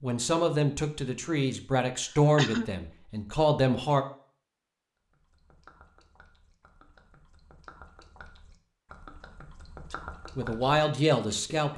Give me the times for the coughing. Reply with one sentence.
The coughing can be heard from 1.9 to 2.7 s.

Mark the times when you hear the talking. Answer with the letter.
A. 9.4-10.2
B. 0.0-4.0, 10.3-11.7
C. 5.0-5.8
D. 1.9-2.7
B.